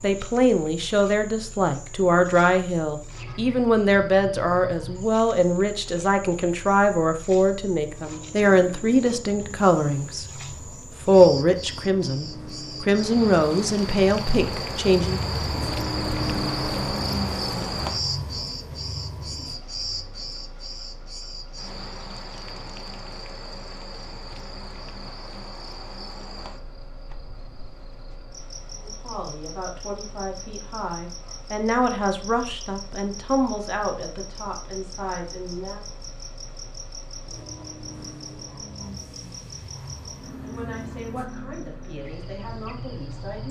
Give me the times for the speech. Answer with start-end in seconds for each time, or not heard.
0.0-10.2, 11.1-15.2, 28.8-35.8, 40.4-43.4.